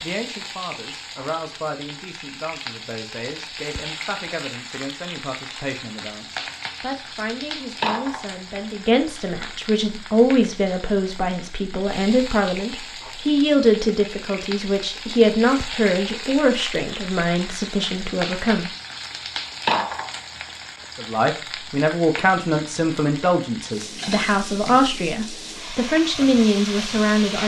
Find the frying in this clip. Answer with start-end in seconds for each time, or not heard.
0.0-27.4.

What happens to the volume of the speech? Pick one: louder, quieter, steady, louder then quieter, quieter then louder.
louder.